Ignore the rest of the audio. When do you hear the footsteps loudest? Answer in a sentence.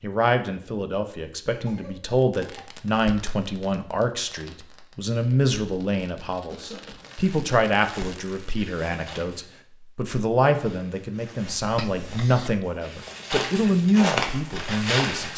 The volume of the footsteps peaks at 14 seconds.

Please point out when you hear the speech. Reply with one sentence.
The speech can be heard from 0.0 to 15.3 s.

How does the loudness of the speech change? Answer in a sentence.
The loudness of the speech stays about the same.